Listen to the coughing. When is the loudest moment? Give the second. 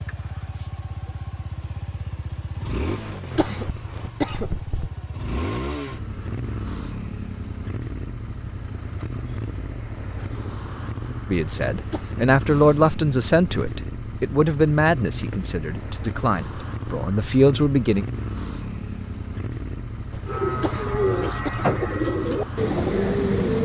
4 s.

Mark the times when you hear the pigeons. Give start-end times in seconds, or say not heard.
20.2-23.5.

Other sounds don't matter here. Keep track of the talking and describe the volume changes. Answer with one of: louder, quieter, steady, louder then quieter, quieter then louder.
quieter then louder.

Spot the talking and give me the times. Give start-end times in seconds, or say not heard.
11.3-18.1.